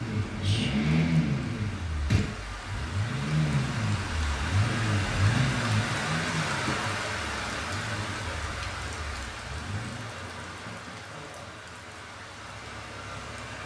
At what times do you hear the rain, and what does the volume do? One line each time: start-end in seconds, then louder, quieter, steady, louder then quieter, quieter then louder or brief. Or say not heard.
0.0-13.6 louder then quieter.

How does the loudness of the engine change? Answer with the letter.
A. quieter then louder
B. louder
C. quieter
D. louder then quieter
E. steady
C.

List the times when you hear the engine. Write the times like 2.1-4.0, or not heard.
0.0-13.6.